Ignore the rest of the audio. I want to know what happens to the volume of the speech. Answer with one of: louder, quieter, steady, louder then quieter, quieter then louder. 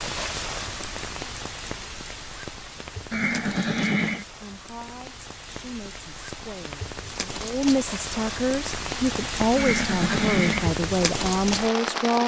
louder.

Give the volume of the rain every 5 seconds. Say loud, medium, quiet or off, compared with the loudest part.
medium, medium, loud.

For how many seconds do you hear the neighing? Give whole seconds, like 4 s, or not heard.
2 s.